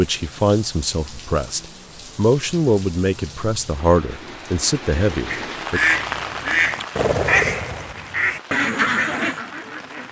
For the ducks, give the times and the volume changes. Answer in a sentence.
You can hear the ducks from 5.2 to 10.0 s, at a steady volume.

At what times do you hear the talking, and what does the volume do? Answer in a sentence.
The talking can be heard from 0.0 to 5.8 s, at a steady volume.